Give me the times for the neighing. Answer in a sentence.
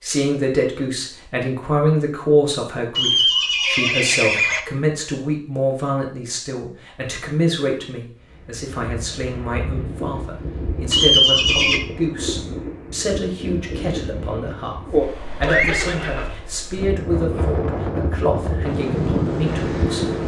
The neighing can be heard from 3.0 to 4.6 s, from 10.9 to 11.8 s and from 15.4 to 16.4 s.